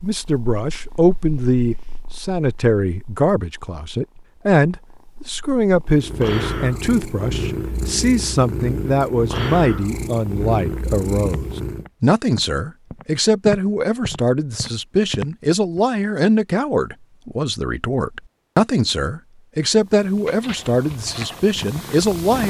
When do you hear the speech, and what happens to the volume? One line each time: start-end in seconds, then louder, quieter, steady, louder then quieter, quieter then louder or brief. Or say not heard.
0.0-22.4 steady.